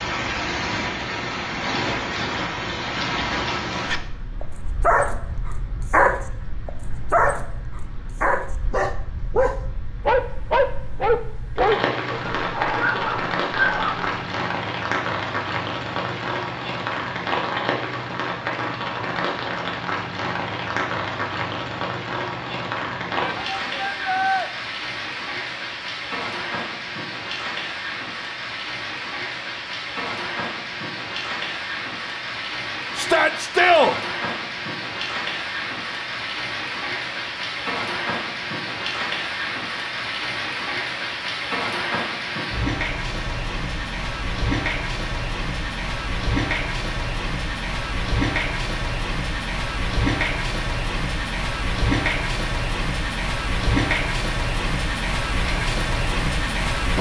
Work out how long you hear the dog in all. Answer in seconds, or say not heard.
10 s.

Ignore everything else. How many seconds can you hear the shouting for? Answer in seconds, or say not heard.
2 s.